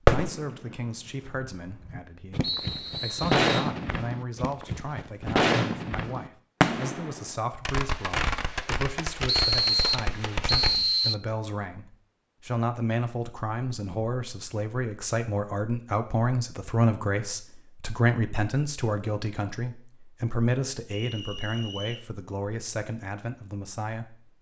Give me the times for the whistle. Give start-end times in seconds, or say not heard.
2.4-3.7, 9.2-11.2, 20.9-22.1.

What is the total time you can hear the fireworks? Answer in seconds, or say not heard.
11 s.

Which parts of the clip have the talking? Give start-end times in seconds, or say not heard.
0.1-24.3.